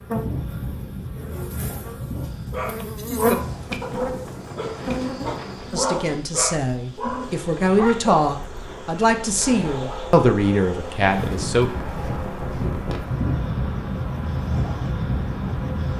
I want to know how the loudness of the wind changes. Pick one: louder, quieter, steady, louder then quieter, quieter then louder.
quieter then louder.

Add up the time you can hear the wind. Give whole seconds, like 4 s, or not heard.
16 s.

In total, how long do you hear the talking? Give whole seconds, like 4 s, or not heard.
6 s.